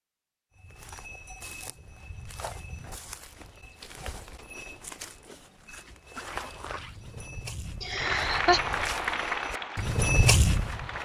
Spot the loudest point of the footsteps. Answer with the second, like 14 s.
10 s.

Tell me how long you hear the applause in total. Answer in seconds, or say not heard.
3 s.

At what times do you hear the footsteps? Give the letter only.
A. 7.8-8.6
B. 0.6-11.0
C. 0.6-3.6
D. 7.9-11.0
B.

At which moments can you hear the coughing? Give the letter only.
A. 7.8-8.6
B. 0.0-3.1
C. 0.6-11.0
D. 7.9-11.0
A.